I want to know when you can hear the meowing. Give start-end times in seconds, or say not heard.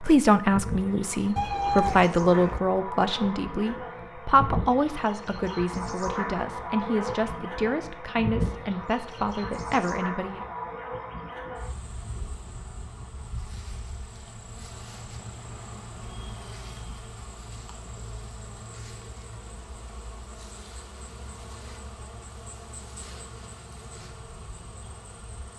1.4-2.6.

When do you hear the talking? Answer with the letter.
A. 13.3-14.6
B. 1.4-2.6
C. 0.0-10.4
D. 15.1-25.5
C.